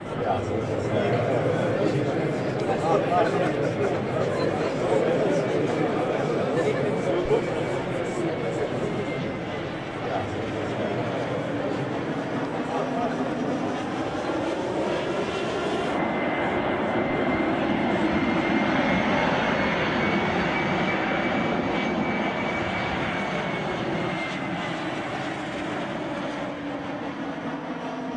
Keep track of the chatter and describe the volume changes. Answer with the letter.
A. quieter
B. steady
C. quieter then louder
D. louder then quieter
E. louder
A.